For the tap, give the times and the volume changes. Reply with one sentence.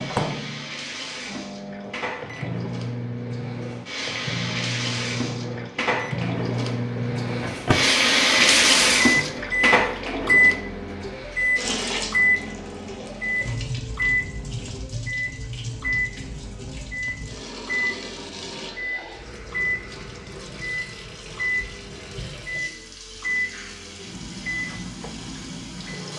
You can hear the tap from 0.0 to 26.1 s, getting louder then quieter.